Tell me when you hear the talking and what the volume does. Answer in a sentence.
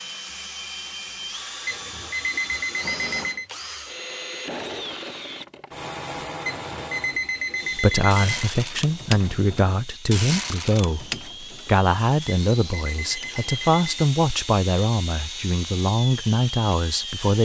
You can hear the talking from 7.8 to 17.4 s, at a steady volume.